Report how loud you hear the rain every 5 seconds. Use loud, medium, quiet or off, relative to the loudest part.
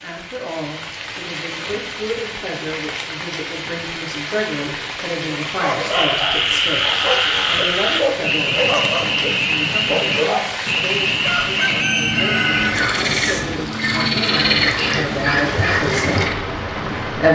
medium, loud, loud, loud.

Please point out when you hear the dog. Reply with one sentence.
You can hear the dog from 5.4 to 10.8 s.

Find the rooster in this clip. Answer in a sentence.
You can hear the rooster from 11.2 to 12.9 s.